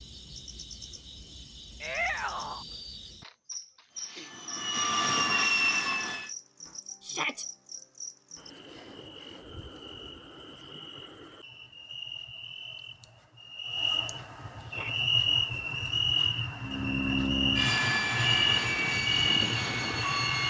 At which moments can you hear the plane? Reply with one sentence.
The plane can be heard from 3.9 to 6.3 s and from 16.6 to 20.4 s.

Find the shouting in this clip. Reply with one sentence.
You can hear the shouting from 1.8 to 2.6 s, from 7.0 to 7.5 s and from 14.6 to 15.1 s.